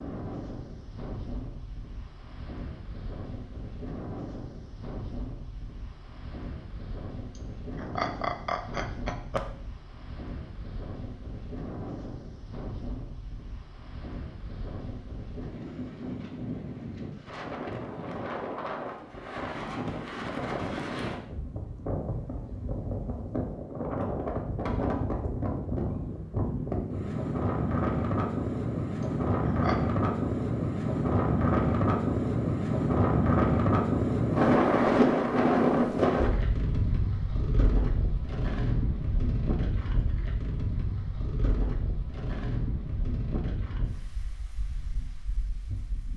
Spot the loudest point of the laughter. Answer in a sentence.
The volume of the laughter peaks at 8 seconds.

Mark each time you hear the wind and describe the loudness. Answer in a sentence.
The wind can be heard from 0.0 to 46.1 s, getting louder then quieter.